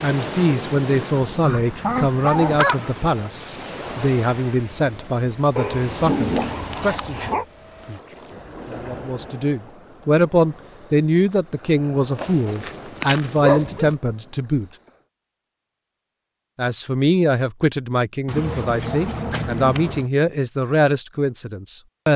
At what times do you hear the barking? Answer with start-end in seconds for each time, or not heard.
1.2-3.3, 5.5-7.5, 12.2-13.9, 18.2-20.1.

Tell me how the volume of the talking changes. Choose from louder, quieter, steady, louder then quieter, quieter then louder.
steady.